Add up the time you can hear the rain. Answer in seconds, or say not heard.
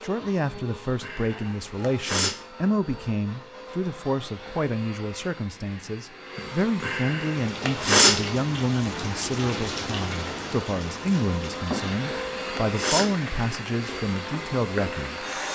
8 s.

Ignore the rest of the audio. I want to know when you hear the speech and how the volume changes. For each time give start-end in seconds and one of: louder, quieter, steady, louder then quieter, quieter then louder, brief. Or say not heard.
0.0-15.2 steady.